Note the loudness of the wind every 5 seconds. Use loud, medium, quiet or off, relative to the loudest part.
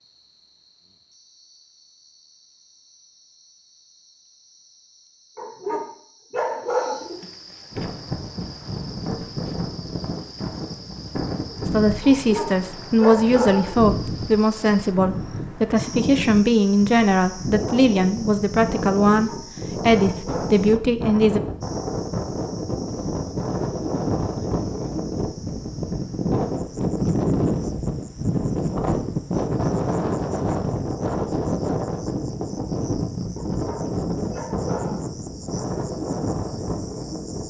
off, medium, medium, medium, loud, loud, loud, medium.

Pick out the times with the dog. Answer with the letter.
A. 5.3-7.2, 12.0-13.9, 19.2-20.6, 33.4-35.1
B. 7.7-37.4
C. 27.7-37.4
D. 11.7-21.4
A.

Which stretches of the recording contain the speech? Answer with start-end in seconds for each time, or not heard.
11.7-21.4.